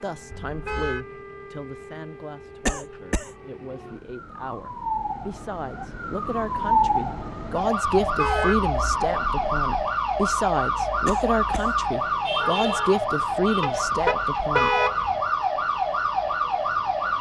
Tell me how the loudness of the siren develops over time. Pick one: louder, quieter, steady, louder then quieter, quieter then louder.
louder.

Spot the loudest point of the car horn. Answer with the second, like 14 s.
15 s.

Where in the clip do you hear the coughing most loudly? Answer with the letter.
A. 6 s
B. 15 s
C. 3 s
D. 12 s
C.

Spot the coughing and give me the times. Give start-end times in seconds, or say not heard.
2.6-3.3, 11.1-11.8.